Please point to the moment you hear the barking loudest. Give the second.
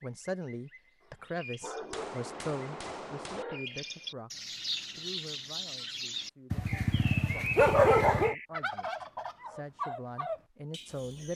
8 s.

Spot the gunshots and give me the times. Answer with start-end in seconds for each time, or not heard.
1.9-3.5.